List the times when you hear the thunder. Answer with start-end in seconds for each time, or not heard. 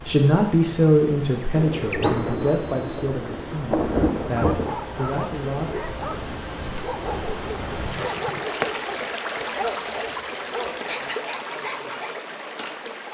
1.5-4.8.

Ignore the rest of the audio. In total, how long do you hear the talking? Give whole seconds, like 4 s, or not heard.
6 s.